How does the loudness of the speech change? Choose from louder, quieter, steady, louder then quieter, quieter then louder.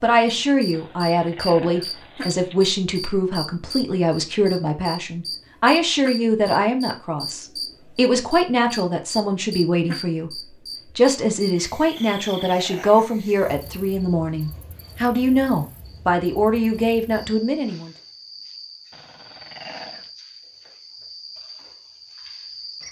steady.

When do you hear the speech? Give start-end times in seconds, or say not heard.
0.0-17.9.